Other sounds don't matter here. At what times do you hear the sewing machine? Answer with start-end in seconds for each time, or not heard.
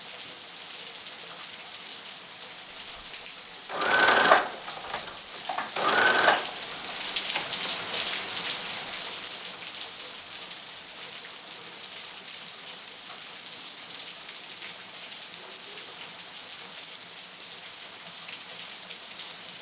3.7-7.7.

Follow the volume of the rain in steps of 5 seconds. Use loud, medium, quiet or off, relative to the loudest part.
medium, loud, medium, medium.